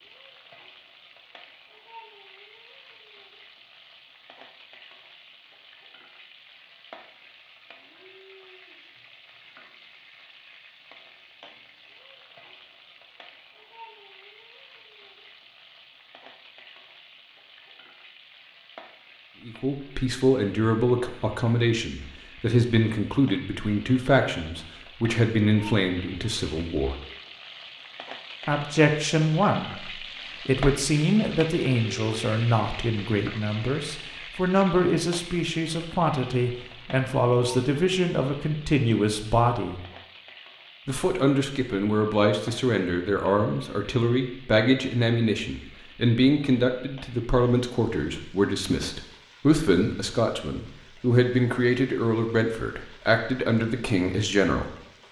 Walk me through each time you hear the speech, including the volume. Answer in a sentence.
You can hear the speech from 19.4 to 26.9 s, at a steady volume; from 28.4 to 39.8 s, at a steady volume; and from 40.9 to 54.7 s, at a steady volume.